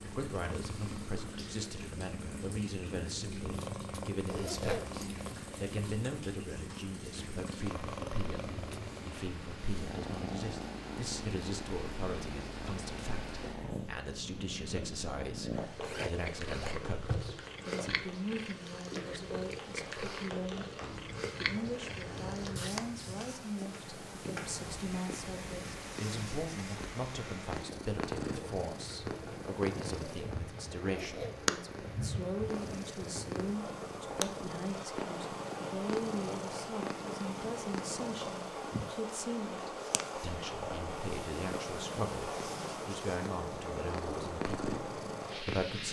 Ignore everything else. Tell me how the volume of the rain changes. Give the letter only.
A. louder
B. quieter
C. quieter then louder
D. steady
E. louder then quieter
A.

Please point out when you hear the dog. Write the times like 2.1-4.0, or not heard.
not heard.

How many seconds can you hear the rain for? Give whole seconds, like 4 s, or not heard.
46 s.